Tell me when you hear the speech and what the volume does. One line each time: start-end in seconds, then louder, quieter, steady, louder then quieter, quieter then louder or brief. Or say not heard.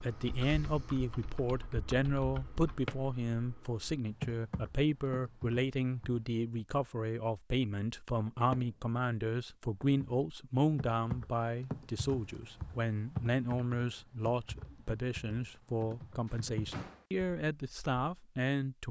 0.0-18.8 steady.